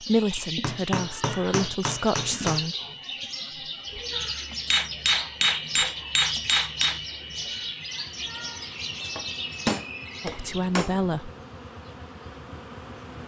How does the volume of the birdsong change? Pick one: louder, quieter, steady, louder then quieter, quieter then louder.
steady.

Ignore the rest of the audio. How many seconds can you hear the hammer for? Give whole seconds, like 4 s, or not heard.
6 s.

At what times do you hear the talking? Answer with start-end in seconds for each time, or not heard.
0.1-2.8, 10.2-11.3.